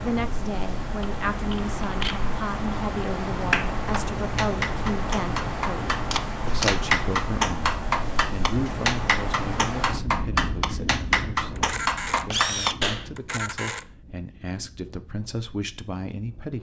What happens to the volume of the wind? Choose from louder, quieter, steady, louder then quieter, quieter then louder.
quieter.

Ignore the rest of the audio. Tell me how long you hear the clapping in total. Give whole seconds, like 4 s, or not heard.
10 s.